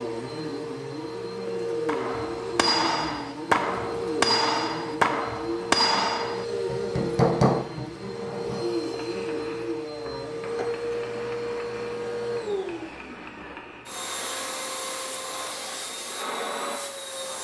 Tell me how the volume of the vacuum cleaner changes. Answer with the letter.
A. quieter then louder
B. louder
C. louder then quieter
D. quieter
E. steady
E.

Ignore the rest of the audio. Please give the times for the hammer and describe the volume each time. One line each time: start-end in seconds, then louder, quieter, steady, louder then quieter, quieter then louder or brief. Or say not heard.
1.9-14.1 quieter.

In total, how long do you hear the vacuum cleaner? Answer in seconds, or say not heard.
17 s.